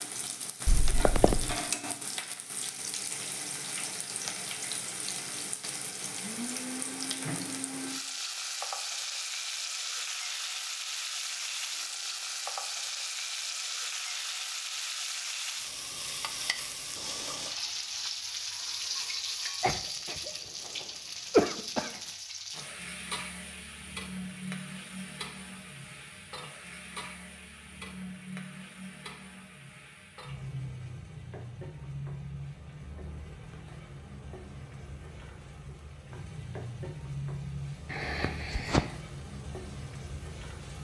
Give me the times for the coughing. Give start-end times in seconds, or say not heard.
0.7-1.6, 19.6-22.0, 37.9-38.9.